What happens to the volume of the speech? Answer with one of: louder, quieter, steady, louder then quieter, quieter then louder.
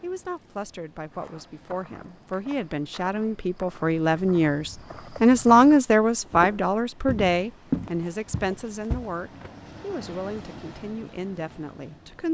louder then quieter.